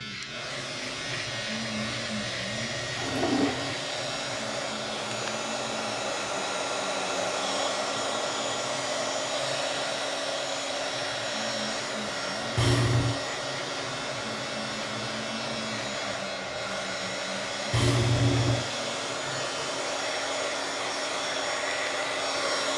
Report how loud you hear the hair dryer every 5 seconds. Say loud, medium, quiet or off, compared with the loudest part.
medium, loud, loud, loud, loud.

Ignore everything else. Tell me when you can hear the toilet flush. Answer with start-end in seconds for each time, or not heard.
1.8-3.8, 12.6-13.2, 17.7-18.7.